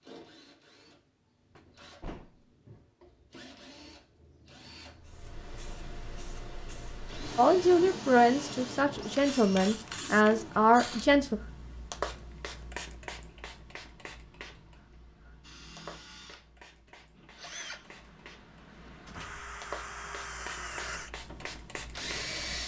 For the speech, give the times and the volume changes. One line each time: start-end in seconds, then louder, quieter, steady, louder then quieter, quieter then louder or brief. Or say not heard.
7.3-11.4 quieter then louder.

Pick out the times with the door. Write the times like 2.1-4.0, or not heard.
1.6-2.5, 19.0-19.5.